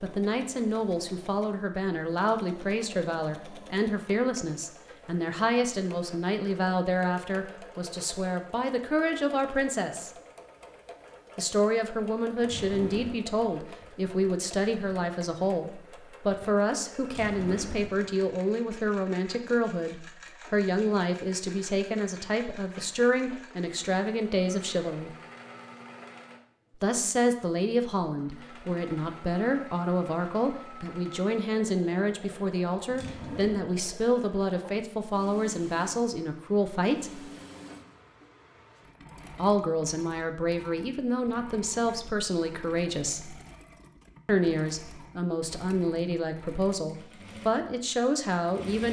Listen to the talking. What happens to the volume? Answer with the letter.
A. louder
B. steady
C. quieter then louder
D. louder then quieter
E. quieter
B.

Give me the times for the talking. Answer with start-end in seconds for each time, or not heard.
0.0-10.1, 11.3-25.1, 26.8-37.3, 39.4-43.4, 44.2-48.8.